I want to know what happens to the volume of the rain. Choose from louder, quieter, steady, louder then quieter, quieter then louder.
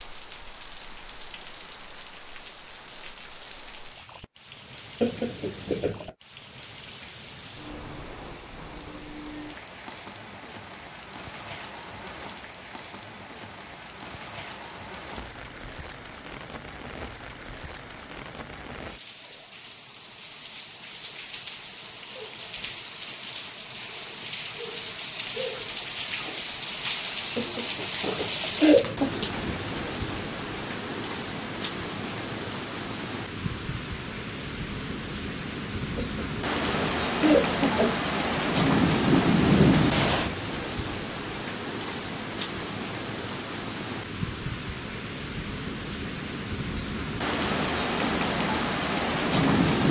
louder.